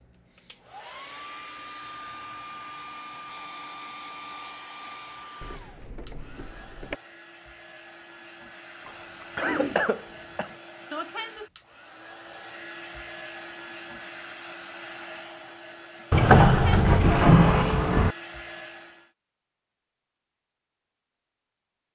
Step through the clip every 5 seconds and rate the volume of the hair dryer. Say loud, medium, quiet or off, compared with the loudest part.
loud, medium, loud, loud, off.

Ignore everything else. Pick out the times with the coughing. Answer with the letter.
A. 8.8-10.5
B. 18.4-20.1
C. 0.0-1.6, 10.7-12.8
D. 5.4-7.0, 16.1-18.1
A.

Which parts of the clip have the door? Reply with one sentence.
The door can be heard from 5.4 to 7.0 s and from 16.1 to 18.1 s.